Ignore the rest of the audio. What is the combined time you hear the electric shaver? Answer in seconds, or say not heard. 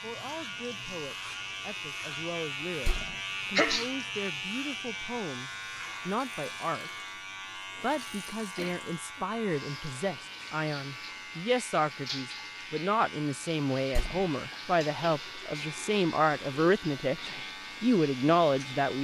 19 s.